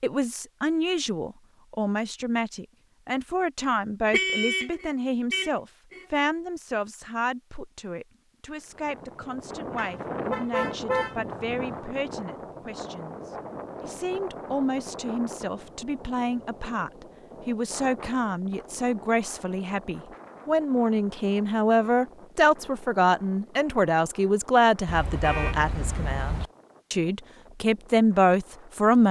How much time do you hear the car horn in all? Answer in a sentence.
You can hear the car horn for 6 seconds altogether.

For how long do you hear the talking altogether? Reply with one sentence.
You can hear the talking for 29 seconds altogether.